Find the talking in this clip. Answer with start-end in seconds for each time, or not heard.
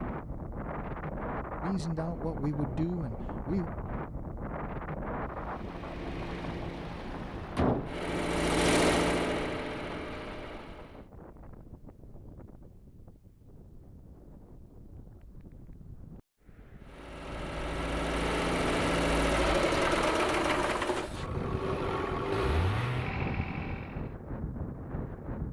1.6-3.7.